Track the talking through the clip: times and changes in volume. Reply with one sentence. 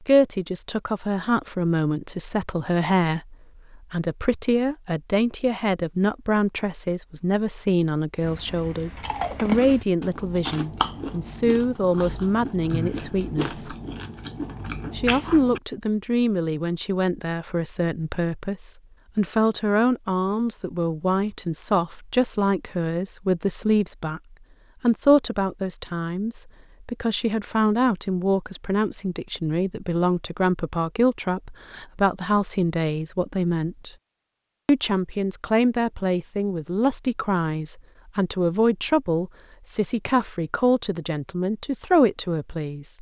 The talking can be heard from 0.0 to 13.8 s, at a steady volume; from 14.9 to 33.9 s, at a steady volume; and from 34.6 to 42.9 s, at a steady volume.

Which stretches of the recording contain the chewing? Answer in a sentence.
The chewing can be heard from 8.2 to 15.6 s.